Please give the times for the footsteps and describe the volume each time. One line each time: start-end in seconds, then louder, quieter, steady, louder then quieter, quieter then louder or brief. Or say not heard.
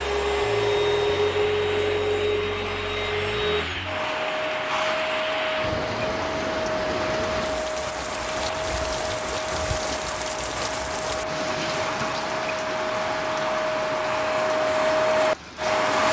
not heard.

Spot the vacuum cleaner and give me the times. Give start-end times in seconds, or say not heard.
0.0-16.0.